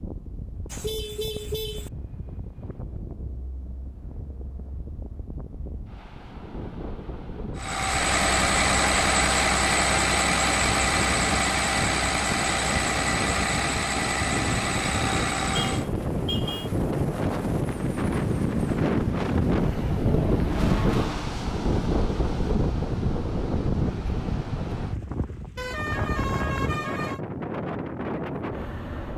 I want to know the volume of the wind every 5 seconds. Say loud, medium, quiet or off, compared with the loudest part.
quiet, quiet, medium, loud, loud, medium.